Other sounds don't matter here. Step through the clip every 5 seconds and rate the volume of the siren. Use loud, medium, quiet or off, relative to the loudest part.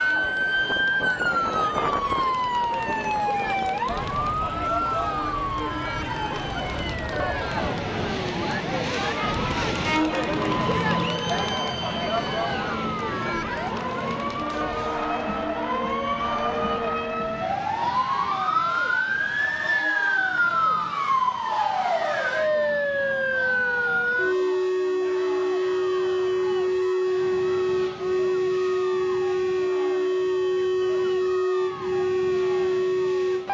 loud, medium, medium, loud, loud, loud, loud.